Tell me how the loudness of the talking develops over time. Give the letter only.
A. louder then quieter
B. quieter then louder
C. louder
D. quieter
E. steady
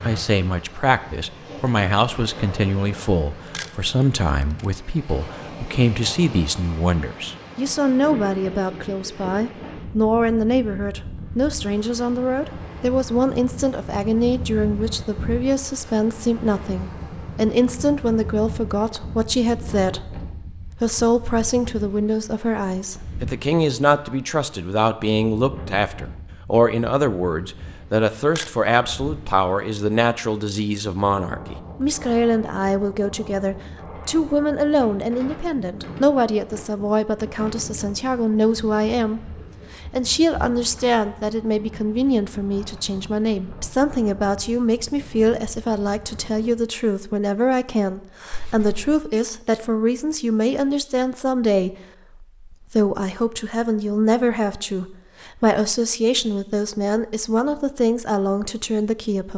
E.